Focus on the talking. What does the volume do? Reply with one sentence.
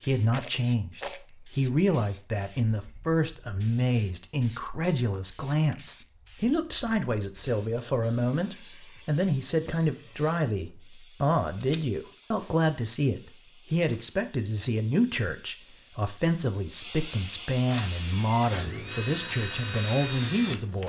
The volume of the talking stays about the same.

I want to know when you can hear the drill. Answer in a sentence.
The drill can be heard from 17.9 to 20.8 s.